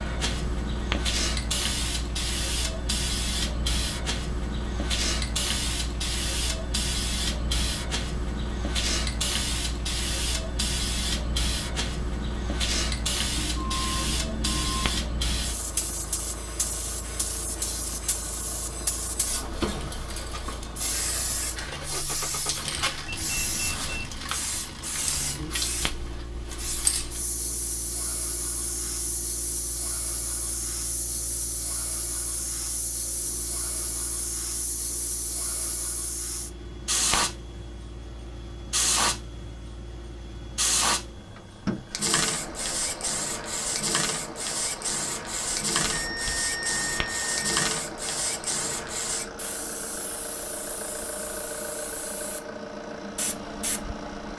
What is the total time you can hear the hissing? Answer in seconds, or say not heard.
54 s.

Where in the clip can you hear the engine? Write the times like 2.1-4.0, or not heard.
15.4-54.3.